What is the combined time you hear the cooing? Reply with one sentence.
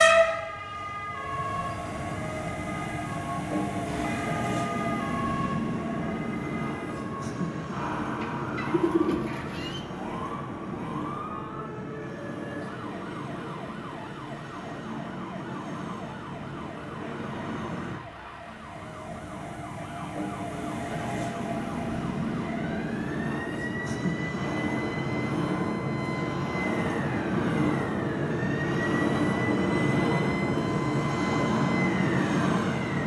You can hear the cooing for 2 seconds altogether.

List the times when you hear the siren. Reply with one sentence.
You can hear the siren from 0.0 to 33.0 s.